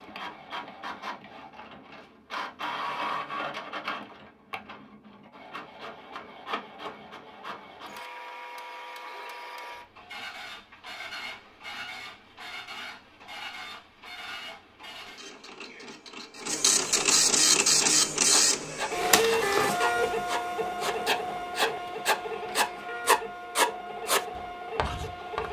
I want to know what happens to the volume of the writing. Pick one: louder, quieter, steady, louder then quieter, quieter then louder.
louder then quieter.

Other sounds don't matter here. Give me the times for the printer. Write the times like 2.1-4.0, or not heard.
0.0-25.4.